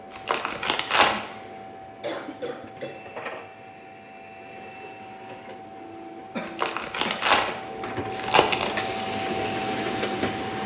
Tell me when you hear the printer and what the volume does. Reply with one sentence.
You can hear the printer from 0.0 to 10.6 s, getting louder.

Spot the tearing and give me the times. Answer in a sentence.
The tearing can be heard from 0.1 to 1.1 s, from 6.5 to 7.5 s and from 8.2 to 8.9 s.